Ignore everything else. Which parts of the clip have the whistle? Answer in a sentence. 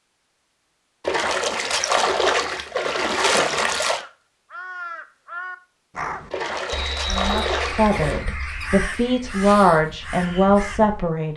You can hear the whistle from 6.7 to 8.2 s.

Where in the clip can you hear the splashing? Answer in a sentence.
The splashing can be heard from 1.0 to 4.0 s and from 6.3 to 8.2 s.